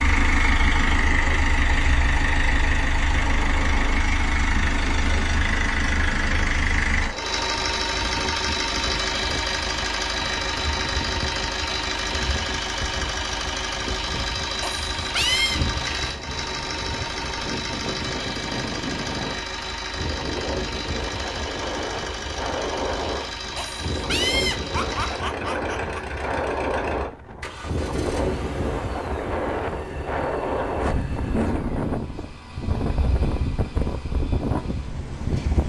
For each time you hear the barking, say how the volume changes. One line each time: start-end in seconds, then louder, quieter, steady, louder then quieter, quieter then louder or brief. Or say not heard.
not heard.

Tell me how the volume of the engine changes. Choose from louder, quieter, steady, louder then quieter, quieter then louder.
quieter.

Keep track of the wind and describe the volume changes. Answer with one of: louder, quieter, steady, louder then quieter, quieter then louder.
louder.